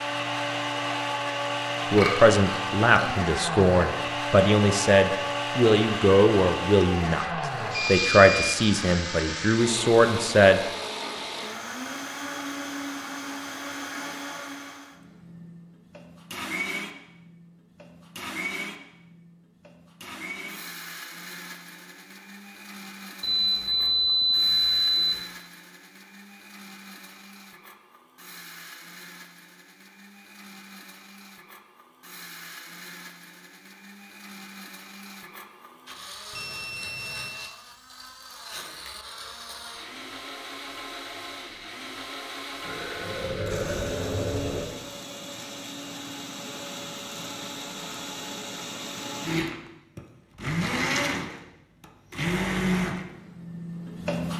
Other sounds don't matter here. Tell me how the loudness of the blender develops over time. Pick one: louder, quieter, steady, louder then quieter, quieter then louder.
quieter then louder.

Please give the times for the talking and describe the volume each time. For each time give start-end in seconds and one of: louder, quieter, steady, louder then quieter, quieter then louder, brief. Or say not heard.
1.9-10.6 steady.